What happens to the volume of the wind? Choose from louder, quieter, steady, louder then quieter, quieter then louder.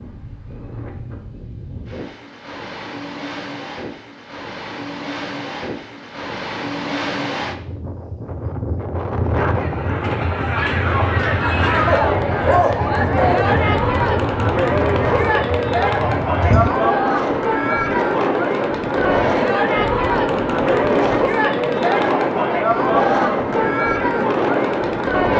louder.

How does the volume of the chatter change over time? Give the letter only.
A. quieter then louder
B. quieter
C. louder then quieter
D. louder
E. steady
E.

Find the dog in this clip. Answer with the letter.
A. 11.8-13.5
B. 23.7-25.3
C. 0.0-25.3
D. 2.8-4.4
A.